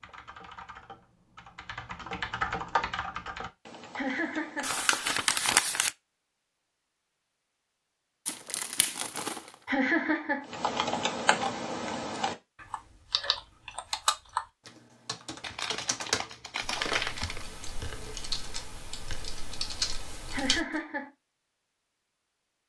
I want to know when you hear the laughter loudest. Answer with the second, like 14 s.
10 s.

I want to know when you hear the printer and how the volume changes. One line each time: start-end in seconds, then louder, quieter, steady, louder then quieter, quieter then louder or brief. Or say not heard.
not heard.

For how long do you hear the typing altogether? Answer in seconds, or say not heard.
15 s.